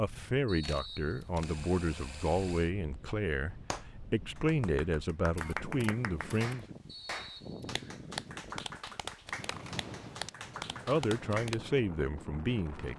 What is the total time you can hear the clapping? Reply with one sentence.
You can hear the clapping for 8 seconds altogether.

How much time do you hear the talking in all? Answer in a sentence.
You can hear the talking for 9 seconds altogether.